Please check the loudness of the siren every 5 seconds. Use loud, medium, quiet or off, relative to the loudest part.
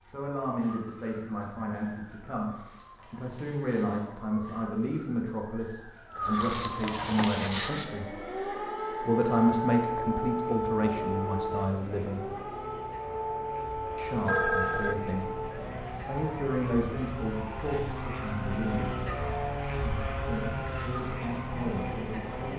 quiet, loud, loud, medium, medium.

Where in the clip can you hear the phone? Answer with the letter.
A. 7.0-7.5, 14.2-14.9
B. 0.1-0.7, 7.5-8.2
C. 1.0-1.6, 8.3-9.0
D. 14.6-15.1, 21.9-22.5
A.